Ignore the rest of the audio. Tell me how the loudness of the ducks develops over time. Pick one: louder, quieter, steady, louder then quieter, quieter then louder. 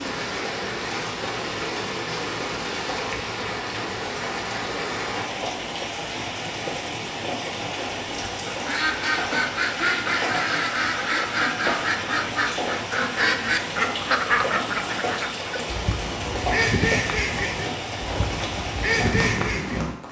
steady.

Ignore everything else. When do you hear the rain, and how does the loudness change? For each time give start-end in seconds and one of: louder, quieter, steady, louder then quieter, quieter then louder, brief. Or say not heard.
0.0-20.0 steady.